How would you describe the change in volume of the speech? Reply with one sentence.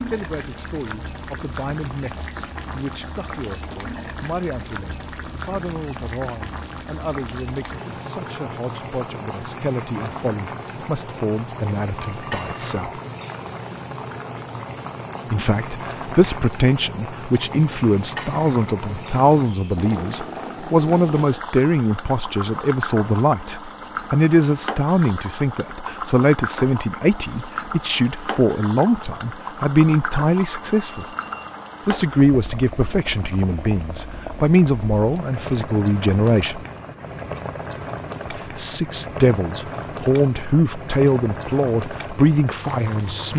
The loudness of the speech goes up.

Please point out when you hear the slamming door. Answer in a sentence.
You can't hear the slamming door here.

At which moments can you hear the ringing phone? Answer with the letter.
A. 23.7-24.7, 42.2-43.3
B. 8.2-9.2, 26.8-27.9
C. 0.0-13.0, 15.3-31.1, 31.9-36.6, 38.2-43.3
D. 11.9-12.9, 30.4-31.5
D.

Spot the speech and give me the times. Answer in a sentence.
The speech can be heard from 0.0 to 13.0 s, from 15.3 to 31.1 s, from 31.9 to 36.6 s and from 38.2 to 43.3 s.